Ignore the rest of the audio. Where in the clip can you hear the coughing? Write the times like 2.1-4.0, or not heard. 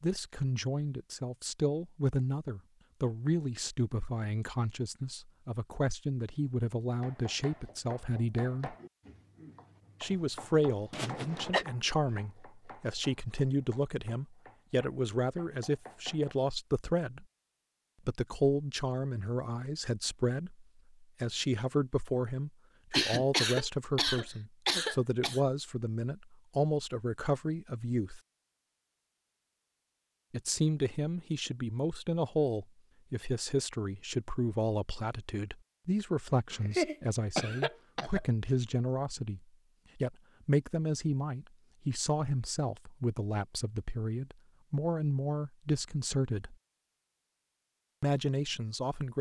10.9-11.7, 22.9-25.4, 36.5-38.2.